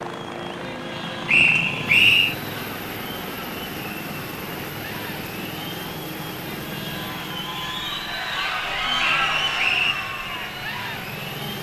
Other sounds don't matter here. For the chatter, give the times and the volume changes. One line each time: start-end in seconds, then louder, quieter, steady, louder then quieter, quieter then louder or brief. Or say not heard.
0.0-11.5 louder.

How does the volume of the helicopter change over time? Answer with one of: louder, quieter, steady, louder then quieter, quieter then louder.
quieter.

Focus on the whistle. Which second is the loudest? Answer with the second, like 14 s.
2 s.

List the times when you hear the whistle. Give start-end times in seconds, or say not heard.
1.2-2.4, 8.9-9.9.